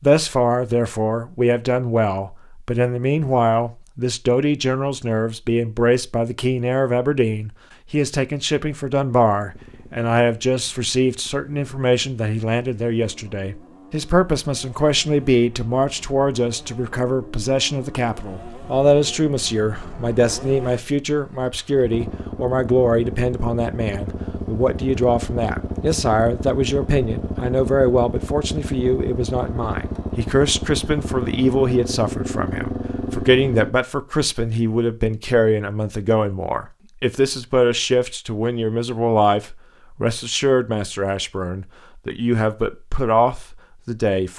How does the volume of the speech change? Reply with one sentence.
The volume of the speech stays about the same.